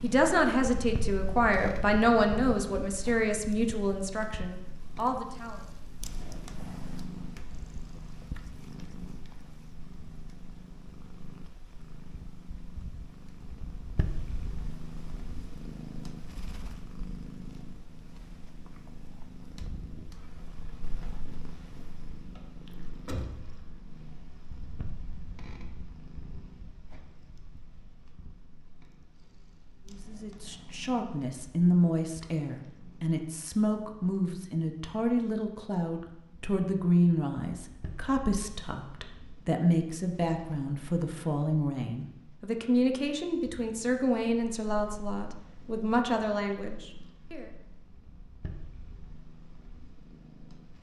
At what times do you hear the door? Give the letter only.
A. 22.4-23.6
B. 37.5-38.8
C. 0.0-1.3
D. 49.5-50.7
A.